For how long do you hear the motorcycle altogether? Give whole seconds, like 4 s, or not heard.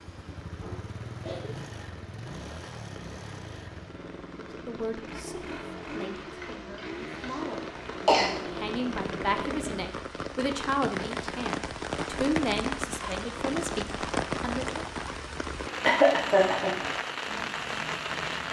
10 s.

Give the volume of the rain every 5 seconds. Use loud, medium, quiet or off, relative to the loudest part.
quiet, medium, loud, loud.